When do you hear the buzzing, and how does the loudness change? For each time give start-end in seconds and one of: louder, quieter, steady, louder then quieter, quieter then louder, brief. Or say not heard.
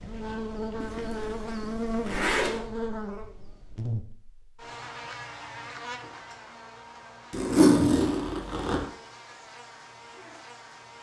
0.0-10.9 quieter.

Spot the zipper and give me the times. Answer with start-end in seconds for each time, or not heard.
0.8-2.6, 7.3-8.8.